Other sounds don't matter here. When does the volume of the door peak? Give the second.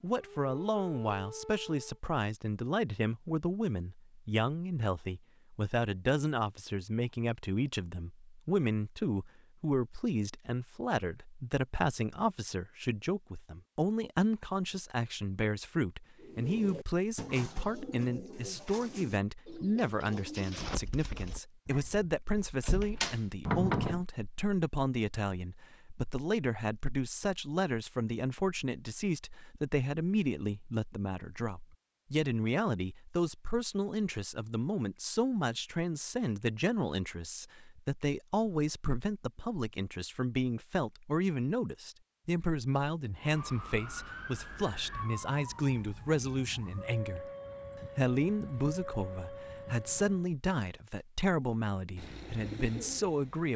24 s.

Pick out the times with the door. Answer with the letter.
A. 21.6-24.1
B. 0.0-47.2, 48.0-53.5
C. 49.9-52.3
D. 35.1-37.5
A.